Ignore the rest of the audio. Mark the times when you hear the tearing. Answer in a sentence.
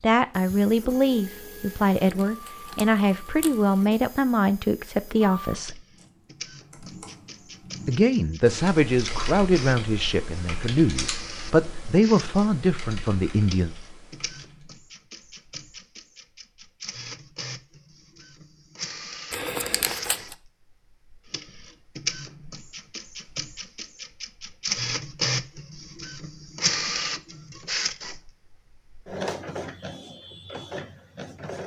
The tearing can be heard from 1.7 to 3.5 s and from 19.3 to 20.4 s.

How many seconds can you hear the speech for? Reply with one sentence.
The speech can be heard for 12 seconds in total.